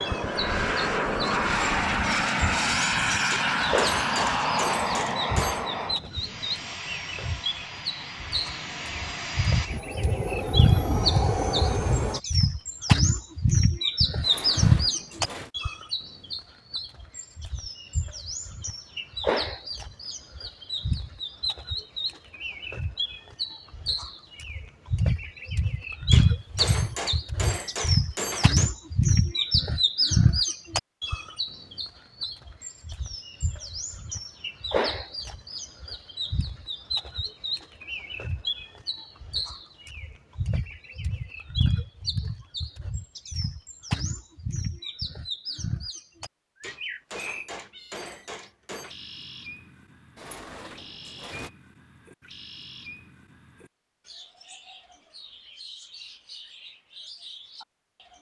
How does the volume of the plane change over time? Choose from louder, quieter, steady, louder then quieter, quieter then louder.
quieter then louder.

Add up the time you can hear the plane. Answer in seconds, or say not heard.
12 s.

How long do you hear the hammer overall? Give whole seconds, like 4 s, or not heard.
7 s.